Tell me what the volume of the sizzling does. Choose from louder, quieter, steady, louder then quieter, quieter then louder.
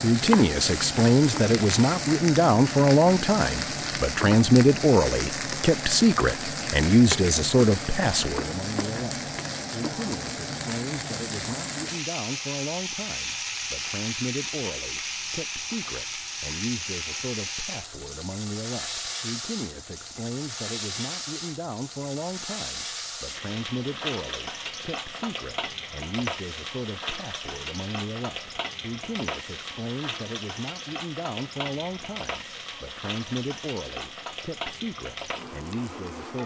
quieter.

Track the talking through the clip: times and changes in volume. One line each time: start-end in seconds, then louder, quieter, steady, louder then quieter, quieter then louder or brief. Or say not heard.
0.0-36.4 quieter.